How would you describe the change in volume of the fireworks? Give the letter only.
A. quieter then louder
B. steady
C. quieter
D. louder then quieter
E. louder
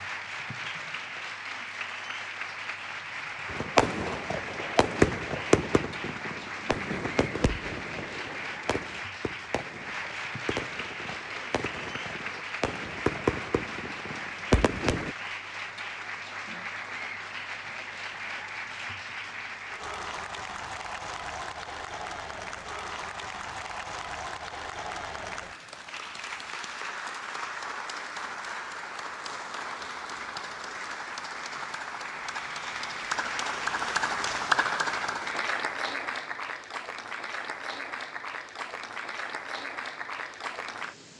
A.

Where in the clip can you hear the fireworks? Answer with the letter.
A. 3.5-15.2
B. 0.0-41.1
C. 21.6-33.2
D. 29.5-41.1
A.